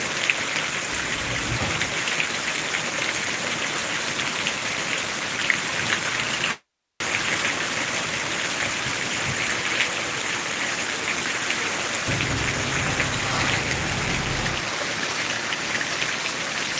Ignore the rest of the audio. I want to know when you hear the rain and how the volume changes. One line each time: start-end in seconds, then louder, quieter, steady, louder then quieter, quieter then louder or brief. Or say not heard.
0.0-16.7 steady.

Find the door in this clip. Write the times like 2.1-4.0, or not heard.
1.1-1.9, 12.1-14.7.